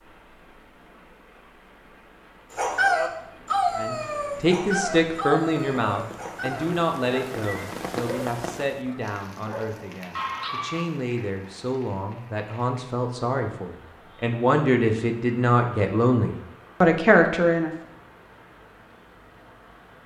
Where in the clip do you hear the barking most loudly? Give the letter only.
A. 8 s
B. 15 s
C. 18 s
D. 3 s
D.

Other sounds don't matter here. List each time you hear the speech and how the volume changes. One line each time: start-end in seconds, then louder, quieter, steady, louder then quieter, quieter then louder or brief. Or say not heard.
3.8-17.7 quieter then louder.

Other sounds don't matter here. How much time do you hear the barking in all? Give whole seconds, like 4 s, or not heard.
8 s.